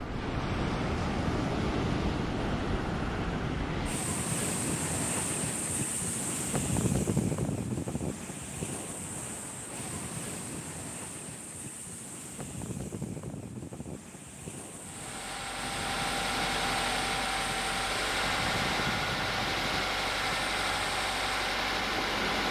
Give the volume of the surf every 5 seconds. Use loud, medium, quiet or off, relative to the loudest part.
loud, loud, medium, medium, medium.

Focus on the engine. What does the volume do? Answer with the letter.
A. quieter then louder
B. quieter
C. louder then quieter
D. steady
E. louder
D.